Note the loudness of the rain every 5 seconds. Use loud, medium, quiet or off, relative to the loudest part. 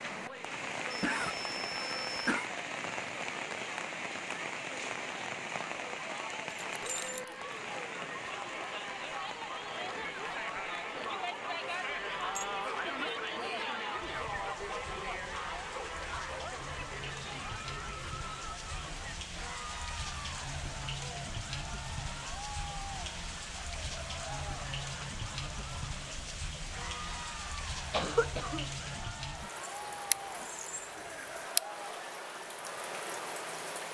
loud, loud, medium, medium, loud, loud, loud.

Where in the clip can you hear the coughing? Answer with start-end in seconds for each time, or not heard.
0.9-2.5, 27.9-28.7.